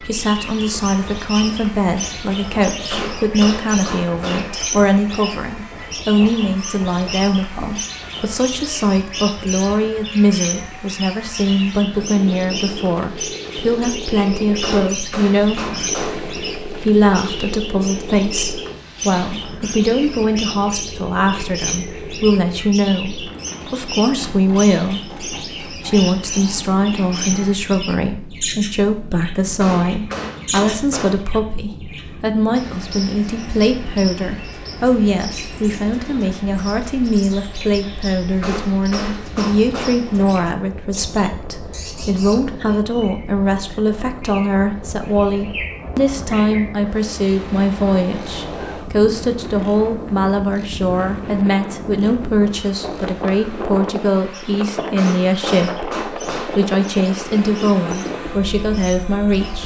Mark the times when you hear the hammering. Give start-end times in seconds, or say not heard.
2.9-4.5, 14.6-16.2, 29.6-31.2, 38.4-40.0, 55.0-56.6.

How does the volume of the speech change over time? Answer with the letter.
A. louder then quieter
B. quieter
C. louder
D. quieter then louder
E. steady
E.